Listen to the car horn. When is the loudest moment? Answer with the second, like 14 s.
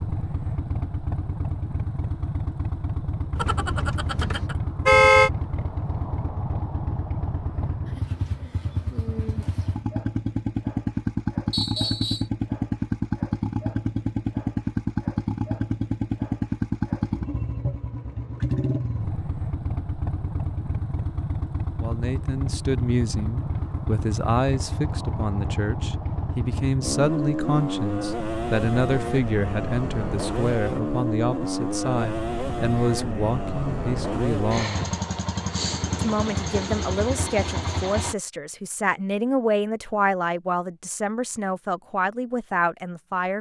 5 s.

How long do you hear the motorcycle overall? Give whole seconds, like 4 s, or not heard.
38 s.